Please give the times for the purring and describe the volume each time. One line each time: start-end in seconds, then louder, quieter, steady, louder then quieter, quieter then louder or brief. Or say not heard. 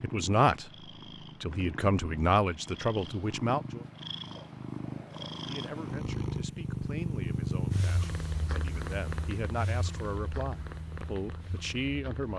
0.0-12.3 louder then quieter.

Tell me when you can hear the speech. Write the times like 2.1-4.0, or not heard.
0.0-0.7, 1.4-3.8, 5.3-12.3.